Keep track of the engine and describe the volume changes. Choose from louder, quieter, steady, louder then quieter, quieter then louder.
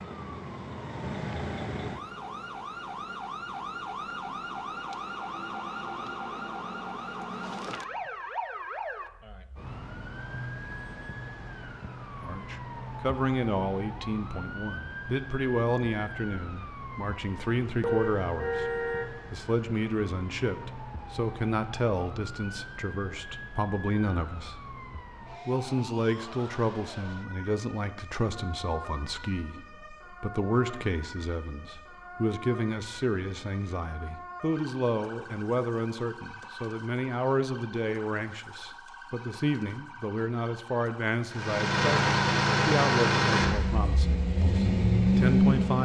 quieter then louder.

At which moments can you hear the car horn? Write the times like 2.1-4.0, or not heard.
17.8-19.1.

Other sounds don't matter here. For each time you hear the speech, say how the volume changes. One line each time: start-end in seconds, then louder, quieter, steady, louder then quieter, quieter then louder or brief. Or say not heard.
12.2-24.7 steady
25.4-45.7 steady.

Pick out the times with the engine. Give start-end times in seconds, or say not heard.
41.2-45.7.